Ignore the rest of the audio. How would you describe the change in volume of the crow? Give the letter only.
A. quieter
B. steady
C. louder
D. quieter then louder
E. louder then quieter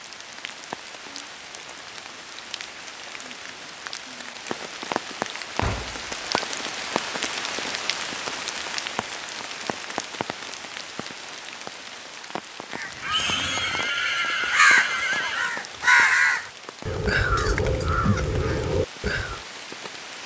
E.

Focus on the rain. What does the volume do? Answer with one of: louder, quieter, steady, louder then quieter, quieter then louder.
louder then quieter.